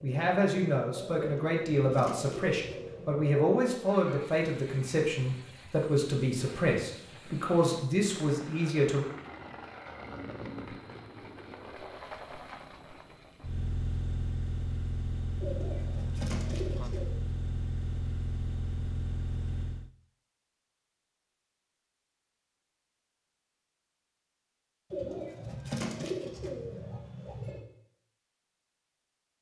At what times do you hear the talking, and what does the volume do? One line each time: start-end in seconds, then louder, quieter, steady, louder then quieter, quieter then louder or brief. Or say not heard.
0.0-9.1 steady.